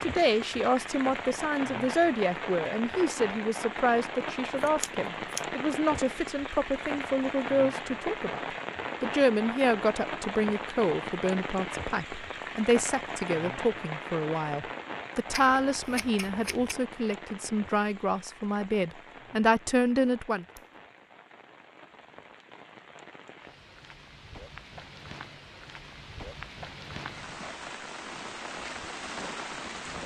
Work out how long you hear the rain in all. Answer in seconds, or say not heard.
30 s.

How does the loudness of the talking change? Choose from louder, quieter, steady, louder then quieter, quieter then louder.
steady.